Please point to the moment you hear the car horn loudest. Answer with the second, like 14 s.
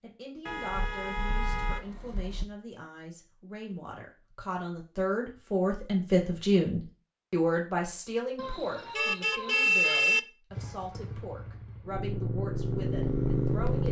10 s.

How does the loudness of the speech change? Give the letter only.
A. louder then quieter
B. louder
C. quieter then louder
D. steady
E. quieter
A.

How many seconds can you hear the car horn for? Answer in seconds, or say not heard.
4 s.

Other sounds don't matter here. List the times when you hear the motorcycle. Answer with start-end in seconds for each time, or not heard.
10.5-13.8.